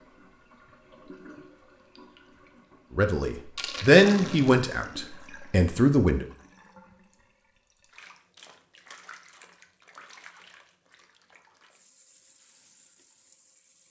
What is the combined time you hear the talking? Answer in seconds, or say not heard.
3 s.